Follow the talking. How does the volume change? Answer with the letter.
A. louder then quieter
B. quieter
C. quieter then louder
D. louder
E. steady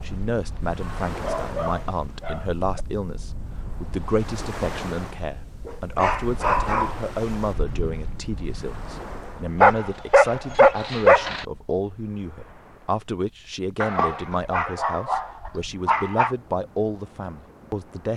E.